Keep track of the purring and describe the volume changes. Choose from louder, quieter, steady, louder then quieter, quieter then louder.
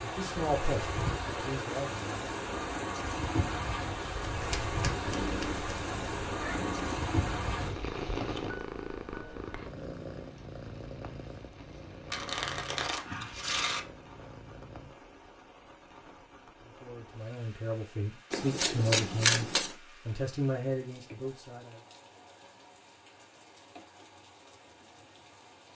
quieter.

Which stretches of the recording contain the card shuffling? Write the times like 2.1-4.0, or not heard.
4.3-5.7, 12.1-13.8, 18.3-19.8.